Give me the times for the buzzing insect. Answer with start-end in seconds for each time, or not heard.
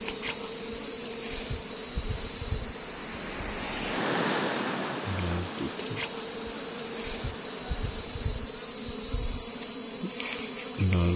0.0-11.1.